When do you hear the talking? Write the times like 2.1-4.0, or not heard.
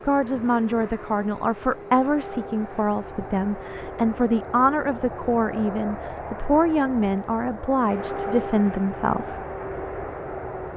0.1-9.4.